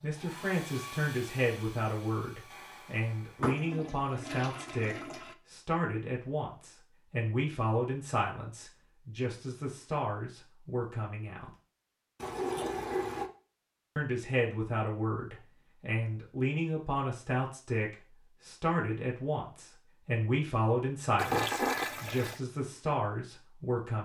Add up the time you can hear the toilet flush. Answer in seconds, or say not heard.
4 s.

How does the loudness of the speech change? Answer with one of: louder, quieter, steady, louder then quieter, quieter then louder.
steady.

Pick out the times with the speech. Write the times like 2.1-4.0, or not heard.
0.0-11.5, 13.9-23.9.